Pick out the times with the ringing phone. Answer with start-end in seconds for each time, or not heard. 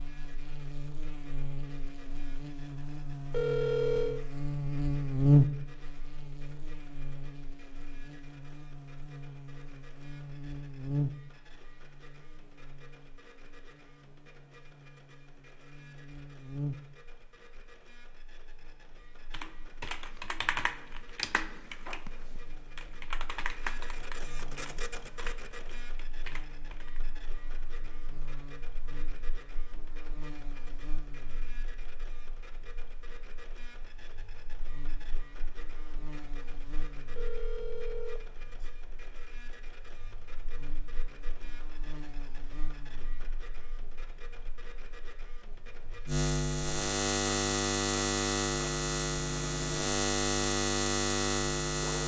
3.3-4.2, 37.1-38.7.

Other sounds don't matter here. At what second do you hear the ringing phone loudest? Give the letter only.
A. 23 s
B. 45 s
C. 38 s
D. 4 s
D.